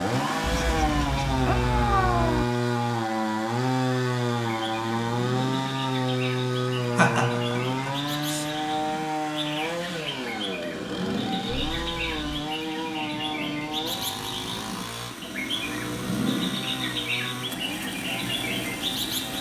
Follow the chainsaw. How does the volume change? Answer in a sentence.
The loudness of the chainsaw goes down.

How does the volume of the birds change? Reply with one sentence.
The loudness of the birds goes up.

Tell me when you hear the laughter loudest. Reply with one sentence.
The loudest moment of the laughter is at 7 seconds.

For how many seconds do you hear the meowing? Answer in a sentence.
You can hear the meowing for 3 seconds altogether.